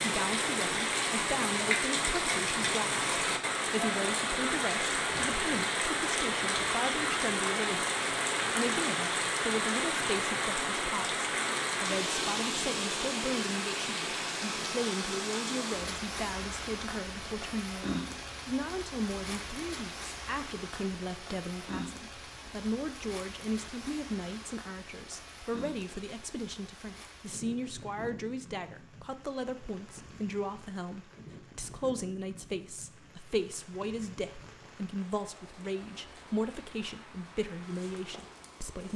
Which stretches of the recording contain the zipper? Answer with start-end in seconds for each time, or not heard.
not heard.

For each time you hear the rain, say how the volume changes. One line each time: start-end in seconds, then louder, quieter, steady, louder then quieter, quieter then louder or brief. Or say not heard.
0.0-38.9 quieter.